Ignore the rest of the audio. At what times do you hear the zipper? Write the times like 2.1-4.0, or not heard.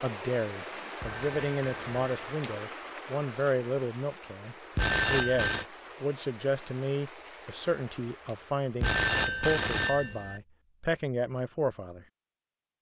not heard.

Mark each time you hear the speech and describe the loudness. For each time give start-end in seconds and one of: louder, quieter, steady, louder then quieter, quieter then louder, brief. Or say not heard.
0.0-12.1 steady.